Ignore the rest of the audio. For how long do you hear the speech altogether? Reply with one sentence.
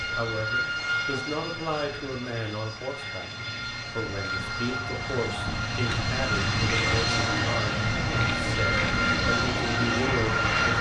The speech can be heard for 10 seconds in total.